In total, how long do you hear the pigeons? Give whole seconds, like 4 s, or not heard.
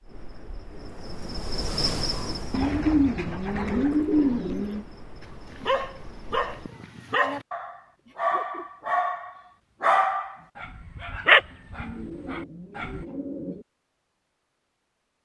4 s.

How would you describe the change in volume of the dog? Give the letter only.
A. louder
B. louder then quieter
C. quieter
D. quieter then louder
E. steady
A.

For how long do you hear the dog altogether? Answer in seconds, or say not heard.
8 s.